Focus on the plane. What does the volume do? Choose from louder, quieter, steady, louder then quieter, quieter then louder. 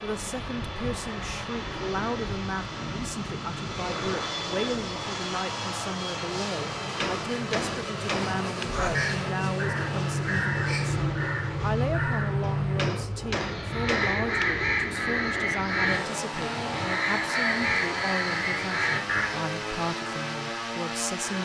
steady.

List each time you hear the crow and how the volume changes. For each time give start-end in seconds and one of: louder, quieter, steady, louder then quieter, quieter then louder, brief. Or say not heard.
8.7-19.3 steady.